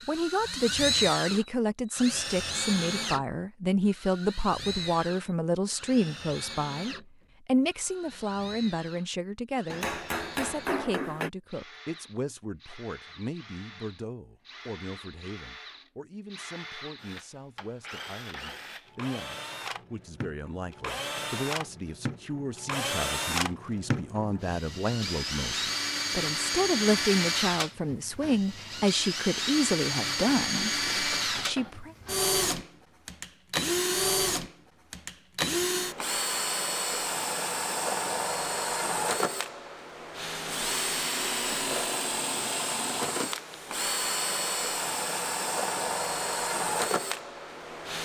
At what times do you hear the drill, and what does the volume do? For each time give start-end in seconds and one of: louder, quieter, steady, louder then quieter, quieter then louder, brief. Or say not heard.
0.0-48.0 quieter then louder.